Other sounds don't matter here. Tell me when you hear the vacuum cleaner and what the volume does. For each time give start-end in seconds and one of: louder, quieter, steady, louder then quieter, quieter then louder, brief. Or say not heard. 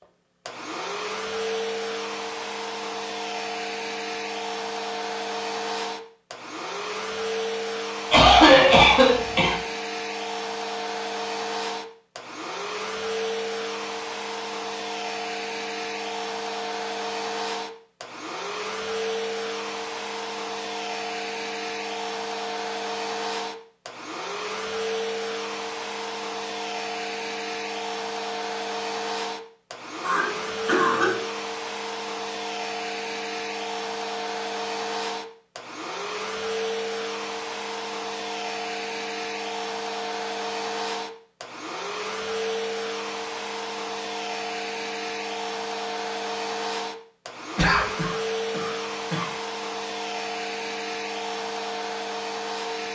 0.0-52.9 steady.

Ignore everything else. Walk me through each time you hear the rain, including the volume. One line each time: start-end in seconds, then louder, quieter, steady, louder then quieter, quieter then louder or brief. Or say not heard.
not heard.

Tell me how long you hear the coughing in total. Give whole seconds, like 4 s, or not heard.
4 s.